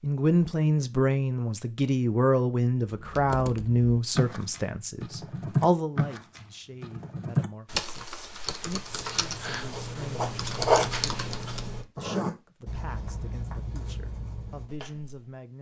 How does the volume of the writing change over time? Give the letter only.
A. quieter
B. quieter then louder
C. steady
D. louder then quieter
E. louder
D.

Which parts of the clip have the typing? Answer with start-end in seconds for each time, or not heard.
2.9-11.8.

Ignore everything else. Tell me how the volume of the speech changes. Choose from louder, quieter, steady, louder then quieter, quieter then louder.
quieter.